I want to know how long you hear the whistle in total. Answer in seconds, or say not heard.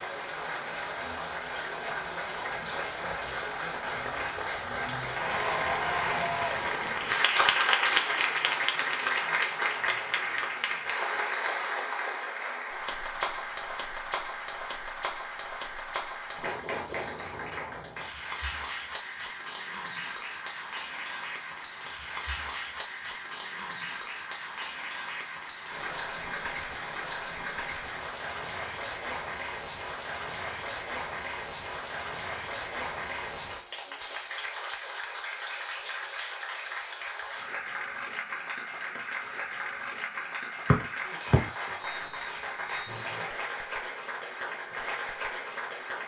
2 s.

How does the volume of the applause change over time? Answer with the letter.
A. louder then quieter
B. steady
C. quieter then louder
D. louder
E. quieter
E.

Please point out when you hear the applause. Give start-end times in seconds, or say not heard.
0.0-46.0.